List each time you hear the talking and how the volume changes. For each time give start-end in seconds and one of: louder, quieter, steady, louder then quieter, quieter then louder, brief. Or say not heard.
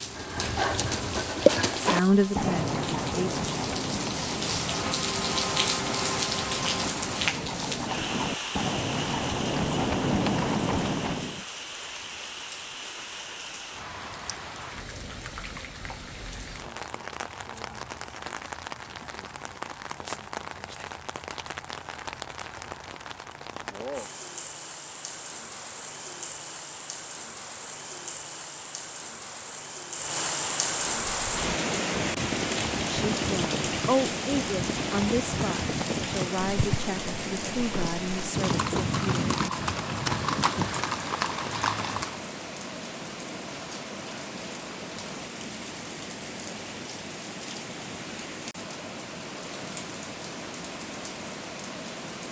1.8-3.3 brief
32.9-39.3 quieter.